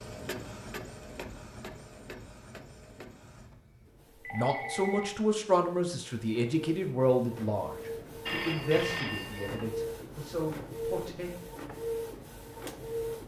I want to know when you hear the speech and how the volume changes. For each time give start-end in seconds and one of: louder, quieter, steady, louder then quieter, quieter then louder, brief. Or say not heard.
4.3-11.3 quieter.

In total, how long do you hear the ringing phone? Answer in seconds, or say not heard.
2 s.